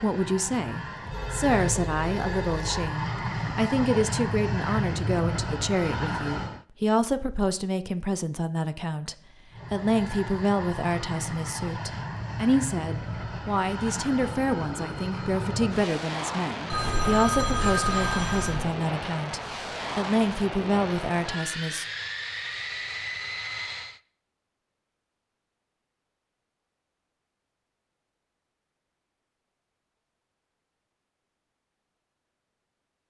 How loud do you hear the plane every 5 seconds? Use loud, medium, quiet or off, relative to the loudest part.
loud, loud, loud, loud, loud, off, off.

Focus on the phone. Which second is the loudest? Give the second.
18 s.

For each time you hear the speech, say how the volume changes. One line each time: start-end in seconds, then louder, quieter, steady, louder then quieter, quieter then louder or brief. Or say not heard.
0.0-21.9 steady.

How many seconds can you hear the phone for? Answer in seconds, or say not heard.
4 s.